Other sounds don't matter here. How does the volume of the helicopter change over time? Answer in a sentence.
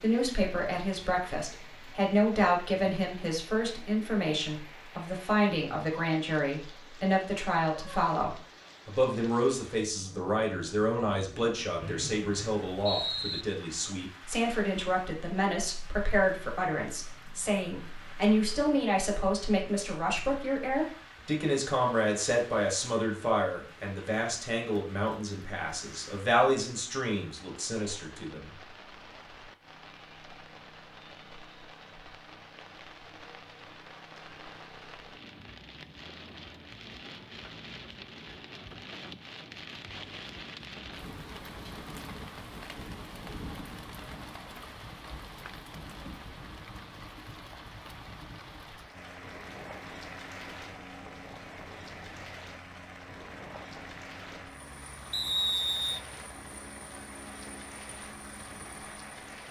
The loudness of the helicopter stays about the same.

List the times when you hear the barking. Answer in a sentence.
You can't hear the barking here.